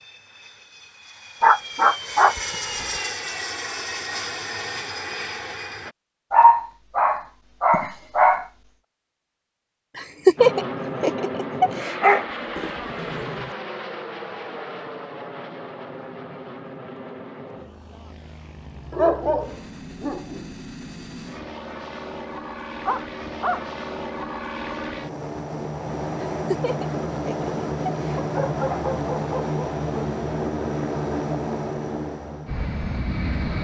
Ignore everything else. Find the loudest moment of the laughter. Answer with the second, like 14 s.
10 s.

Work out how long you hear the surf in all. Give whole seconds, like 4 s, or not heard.
not heard.